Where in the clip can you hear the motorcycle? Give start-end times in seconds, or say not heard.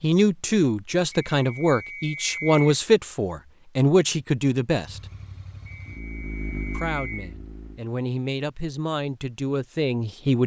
4.8-7.8.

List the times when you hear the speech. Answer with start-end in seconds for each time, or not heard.
0.0-5.0, 6.7-10.4.